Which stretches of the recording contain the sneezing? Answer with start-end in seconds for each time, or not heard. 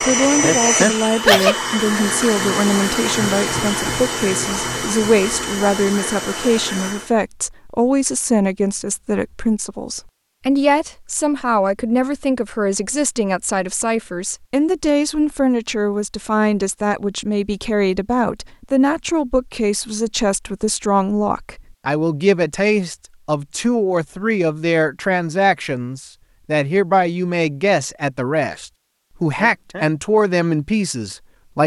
0.4-1.6, 29.4-29.9.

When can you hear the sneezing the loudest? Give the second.
1 s.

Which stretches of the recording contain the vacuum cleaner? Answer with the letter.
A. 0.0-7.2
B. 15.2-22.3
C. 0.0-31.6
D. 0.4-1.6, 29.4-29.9
A.